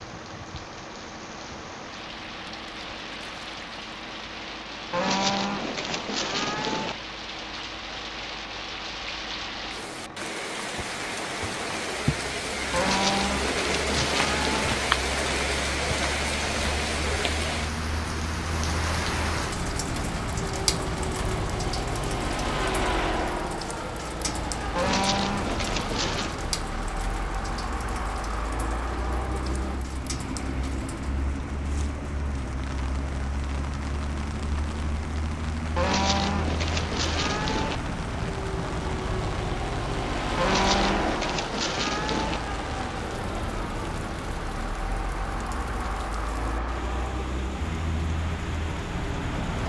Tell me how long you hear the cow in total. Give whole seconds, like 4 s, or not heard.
10 s.